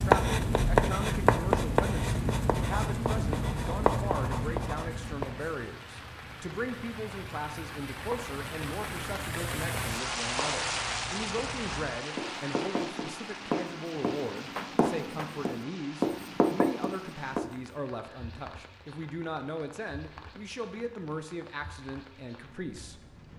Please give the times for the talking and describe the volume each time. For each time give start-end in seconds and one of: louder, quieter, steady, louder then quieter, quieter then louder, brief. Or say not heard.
0.0-23.0 steady.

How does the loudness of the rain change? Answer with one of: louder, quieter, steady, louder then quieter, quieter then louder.
louder then quieter.